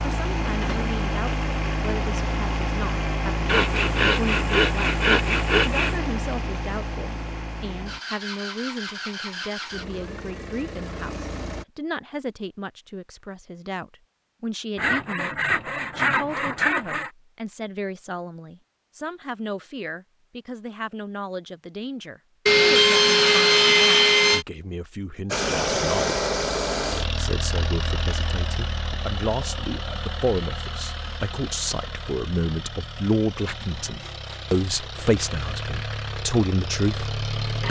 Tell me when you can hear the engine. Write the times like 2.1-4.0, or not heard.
0.0-11.7, 25.3-37.6.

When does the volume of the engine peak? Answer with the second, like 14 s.
26 s.